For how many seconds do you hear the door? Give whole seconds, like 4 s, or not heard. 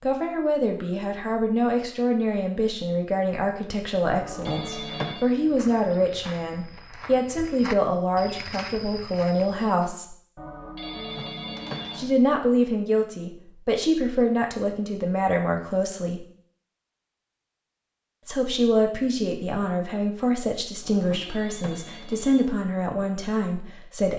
3 s.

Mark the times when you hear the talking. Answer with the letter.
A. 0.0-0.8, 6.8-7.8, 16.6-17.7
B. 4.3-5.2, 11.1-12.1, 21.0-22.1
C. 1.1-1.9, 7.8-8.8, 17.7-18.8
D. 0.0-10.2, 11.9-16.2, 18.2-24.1
D.